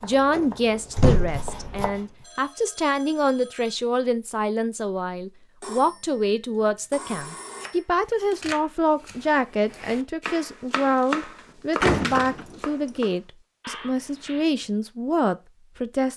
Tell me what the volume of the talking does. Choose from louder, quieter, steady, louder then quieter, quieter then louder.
steady.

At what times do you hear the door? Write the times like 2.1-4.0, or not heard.
0.1-1.9, 11.8-12.4.